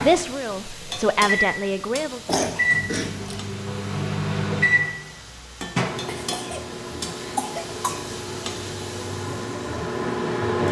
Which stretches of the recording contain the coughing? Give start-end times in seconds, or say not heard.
2.2-3.4, 6.0-8.1.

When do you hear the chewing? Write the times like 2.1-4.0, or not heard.
not heard.